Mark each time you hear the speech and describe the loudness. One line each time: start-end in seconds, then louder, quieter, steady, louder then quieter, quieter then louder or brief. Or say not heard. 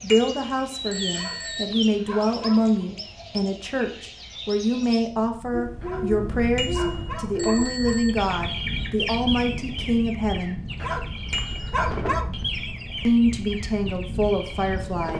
0.0-10.6 steady
13.1-15.1 brief.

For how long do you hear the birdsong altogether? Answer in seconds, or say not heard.
15 s.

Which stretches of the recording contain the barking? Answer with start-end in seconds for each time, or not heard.
1.1-2.8, 5.8-8.0, 10.8-12.4.